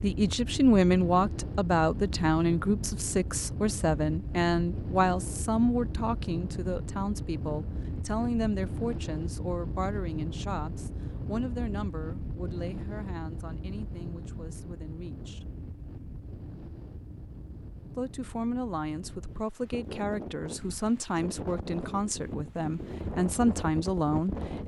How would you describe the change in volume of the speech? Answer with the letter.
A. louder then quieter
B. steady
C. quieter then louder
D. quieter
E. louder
C.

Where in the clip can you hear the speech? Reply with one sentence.
You can hear the speech from 0.0 to 15.4 s and from 17.9 to 24.6 s.